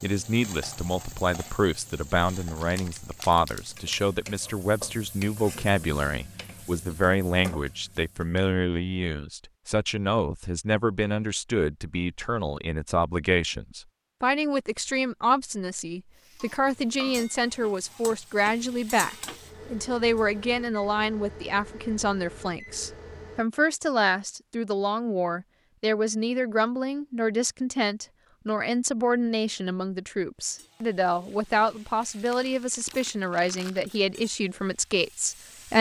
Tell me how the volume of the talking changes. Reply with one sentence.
The loudness of the talking stays about the same.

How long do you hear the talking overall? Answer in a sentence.
The talking can be heard for 36 seconds in total.